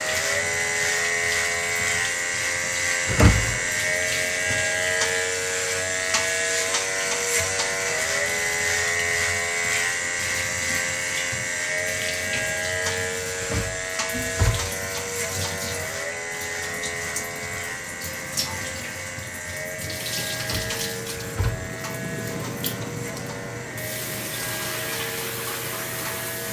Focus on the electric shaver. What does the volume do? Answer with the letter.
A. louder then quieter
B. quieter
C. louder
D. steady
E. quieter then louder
B.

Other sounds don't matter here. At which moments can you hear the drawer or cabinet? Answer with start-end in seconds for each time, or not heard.
3.0-3.6, 13.4-14.7, 20.4-21.7.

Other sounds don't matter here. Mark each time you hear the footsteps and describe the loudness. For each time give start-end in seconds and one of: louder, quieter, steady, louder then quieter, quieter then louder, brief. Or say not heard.
not heard.